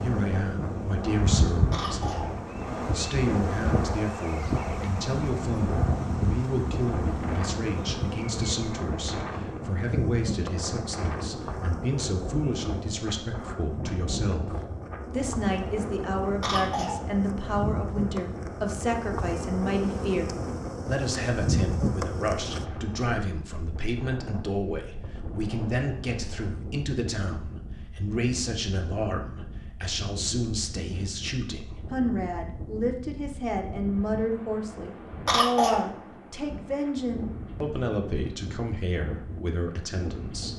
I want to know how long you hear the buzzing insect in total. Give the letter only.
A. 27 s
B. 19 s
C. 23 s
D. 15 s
C.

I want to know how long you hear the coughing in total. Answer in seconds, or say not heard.
2 s.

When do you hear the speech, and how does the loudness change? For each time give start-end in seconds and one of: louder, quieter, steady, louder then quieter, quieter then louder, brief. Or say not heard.
0.0-40.5 steady.